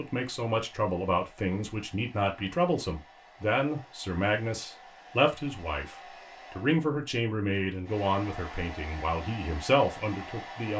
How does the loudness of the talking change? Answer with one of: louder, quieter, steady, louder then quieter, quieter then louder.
steady.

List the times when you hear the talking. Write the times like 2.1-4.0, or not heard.
0.0-10.7.